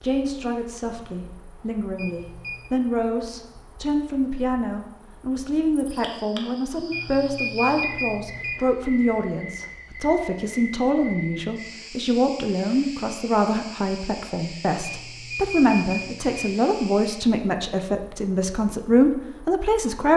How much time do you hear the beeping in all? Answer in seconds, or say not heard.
4 s.